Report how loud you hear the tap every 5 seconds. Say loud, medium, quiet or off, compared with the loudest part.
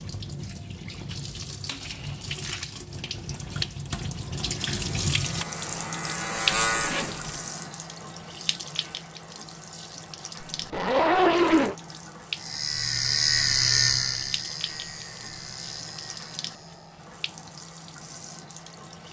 loud, loud, medium, medium.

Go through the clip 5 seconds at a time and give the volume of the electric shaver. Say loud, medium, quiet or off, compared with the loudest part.
off, medium, loud, quiet.